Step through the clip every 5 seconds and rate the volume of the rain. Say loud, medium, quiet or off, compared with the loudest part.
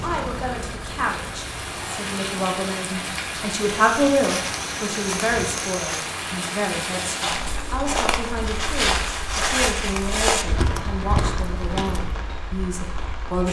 loud, loud, medium.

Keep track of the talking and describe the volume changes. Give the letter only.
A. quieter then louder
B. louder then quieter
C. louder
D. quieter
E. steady
B.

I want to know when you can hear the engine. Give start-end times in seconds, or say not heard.
0.0-1.9.